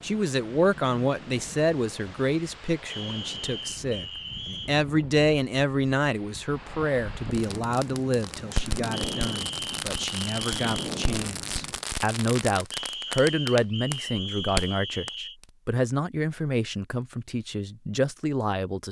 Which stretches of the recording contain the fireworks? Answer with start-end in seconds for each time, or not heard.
7.3-15.4.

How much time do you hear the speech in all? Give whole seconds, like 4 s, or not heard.
19 s.